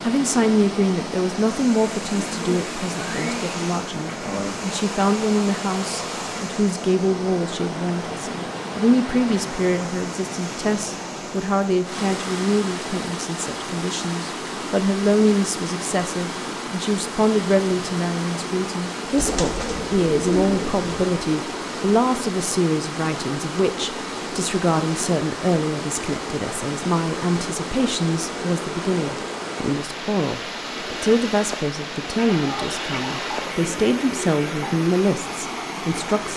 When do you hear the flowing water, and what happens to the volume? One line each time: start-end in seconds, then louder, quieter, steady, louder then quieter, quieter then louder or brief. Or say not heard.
0.0-36.3 steady.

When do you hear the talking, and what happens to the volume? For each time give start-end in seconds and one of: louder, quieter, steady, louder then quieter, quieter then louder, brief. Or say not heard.
0.0-36.3 steady.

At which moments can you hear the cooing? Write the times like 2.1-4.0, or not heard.
2.0-4.6, 19.1-21.2, 32.1-34.7.